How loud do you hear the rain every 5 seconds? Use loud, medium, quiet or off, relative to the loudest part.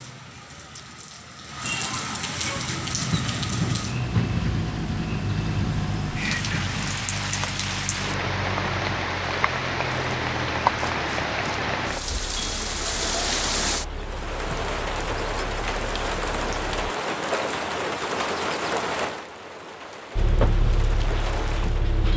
medium, loud, loud, loud, medium.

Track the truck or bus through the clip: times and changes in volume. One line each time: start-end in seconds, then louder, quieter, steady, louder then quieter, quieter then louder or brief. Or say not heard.
2.5-16.7 quieter
20.1-22.1 brief.